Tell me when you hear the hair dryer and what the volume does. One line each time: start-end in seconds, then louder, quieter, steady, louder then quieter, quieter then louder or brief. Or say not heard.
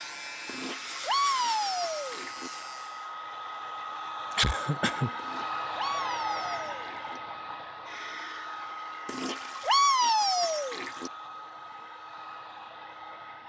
0.0-13.4 louder then quieter.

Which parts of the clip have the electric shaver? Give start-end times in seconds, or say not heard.
0.0-3.1.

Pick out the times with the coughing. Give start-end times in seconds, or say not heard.
4.3-5.1.